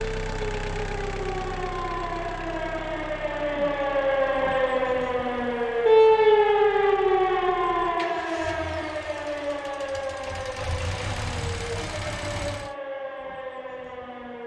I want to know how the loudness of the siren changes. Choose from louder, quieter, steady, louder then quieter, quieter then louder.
louder then quieter.